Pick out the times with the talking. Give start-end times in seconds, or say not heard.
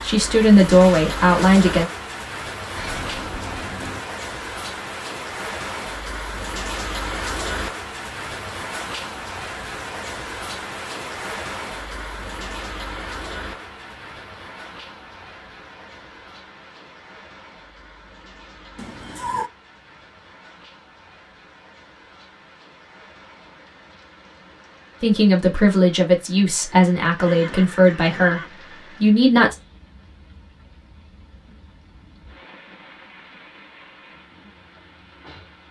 0.0-1.9, 25.0-29.6.